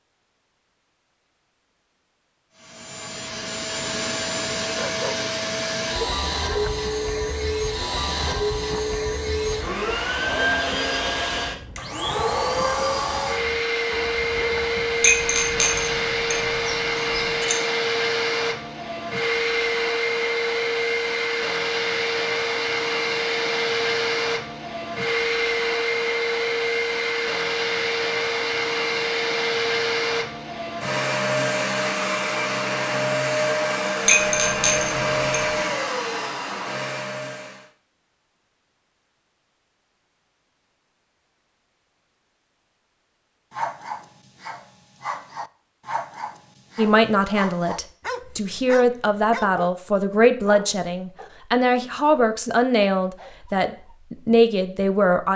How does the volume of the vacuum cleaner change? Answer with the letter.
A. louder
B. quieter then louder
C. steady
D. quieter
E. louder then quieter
C.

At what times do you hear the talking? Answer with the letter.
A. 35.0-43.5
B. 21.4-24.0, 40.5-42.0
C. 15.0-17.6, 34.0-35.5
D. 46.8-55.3
D.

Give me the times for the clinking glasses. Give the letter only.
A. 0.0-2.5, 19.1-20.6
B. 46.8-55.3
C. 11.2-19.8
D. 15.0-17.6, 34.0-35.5
D.